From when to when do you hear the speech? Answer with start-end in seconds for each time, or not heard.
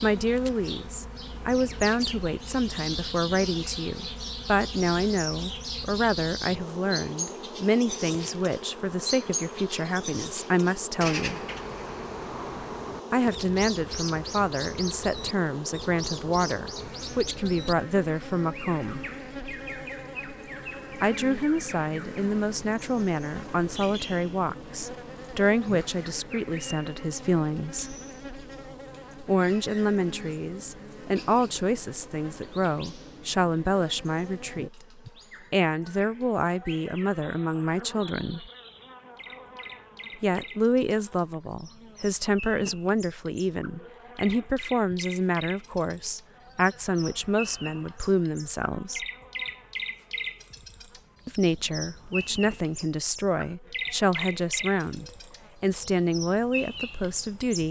0.0-11.4, 13.1-19.1, 20.9-27.9, 29.2-38.5, 40.2-49.0, 51.2-57.6.